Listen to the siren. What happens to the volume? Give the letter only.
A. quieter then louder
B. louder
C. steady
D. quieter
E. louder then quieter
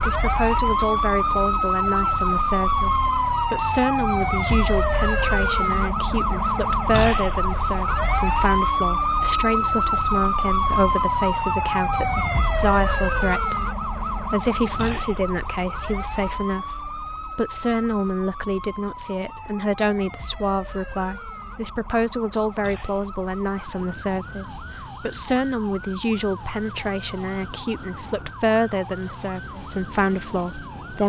D.